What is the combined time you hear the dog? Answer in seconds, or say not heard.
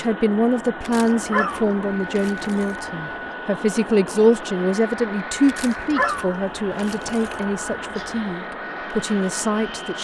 5 s.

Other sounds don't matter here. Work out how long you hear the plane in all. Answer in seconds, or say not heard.
10 s.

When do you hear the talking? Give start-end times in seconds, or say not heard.
0.0-9.9.